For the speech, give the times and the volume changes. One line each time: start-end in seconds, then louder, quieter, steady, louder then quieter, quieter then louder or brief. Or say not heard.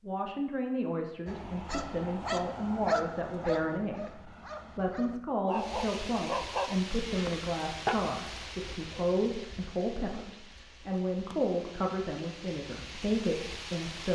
0.1-14.0 steady.